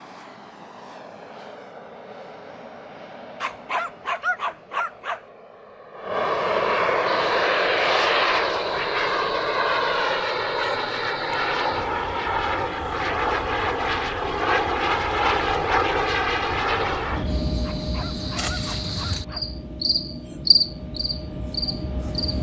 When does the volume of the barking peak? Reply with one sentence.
The volume of the barking peaks at 4 seconds.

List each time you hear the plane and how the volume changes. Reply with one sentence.
The plane can be heard from 0.0 to 22.3 s, getting louder then quieter.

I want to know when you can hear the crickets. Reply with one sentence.
The crickets can be heard from 7.1 to 22.3 s.